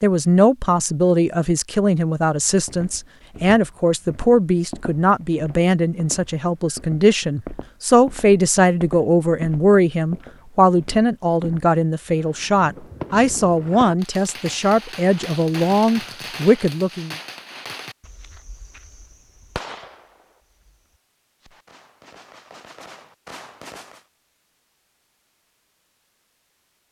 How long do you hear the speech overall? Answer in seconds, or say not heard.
17 s.